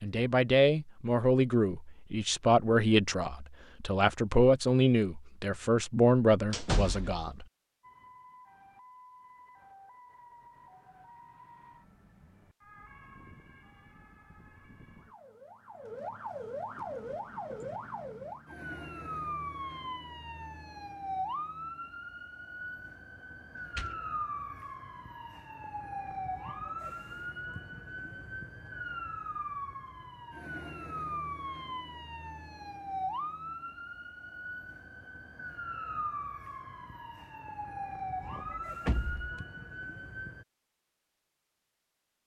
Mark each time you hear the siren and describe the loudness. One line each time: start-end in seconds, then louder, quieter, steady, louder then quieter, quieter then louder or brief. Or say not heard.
7.8-40.5 louder.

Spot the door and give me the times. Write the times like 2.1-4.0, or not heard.
6.5-7.2, 23.8-24.6, 38.2-39.4.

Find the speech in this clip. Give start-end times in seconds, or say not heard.
0.0-7.5.